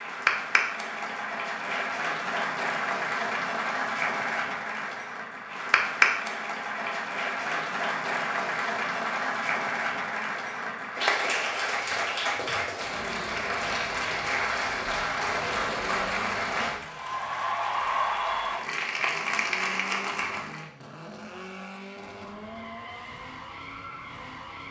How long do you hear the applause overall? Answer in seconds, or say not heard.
21 s.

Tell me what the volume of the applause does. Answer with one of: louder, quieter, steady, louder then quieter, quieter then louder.
steady.